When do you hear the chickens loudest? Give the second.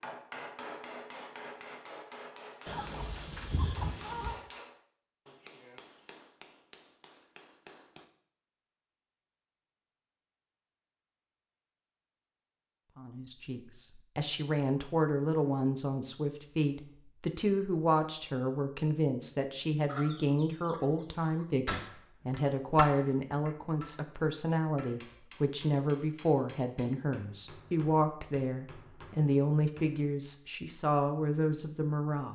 4 s.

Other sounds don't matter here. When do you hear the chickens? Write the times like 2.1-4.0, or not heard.
2.6-4.3, 19.9-21.4.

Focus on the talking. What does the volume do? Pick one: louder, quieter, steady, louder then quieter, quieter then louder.
steady.